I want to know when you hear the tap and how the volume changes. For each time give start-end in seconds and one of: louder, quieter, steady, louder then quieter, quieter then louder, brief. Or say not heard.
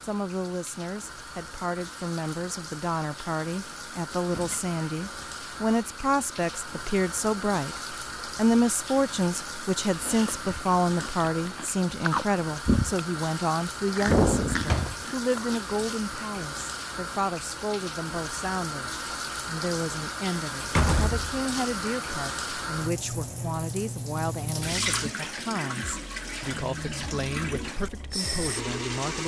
0.0-29.2 louder.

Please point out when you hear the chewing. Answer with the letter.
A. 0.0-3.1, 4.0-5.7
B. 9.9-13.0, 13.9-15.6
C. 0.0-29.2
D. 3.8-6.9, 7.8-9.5
B.